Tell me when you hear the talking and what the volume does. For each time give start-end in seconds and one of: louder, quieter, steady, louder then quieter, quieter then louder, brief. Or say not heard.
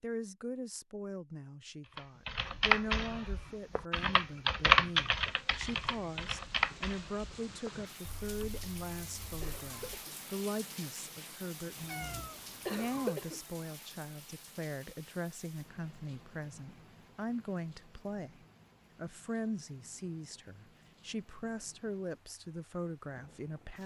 0.0-23.8 steady.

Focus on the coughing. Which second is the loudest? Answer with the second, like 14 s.
13 s.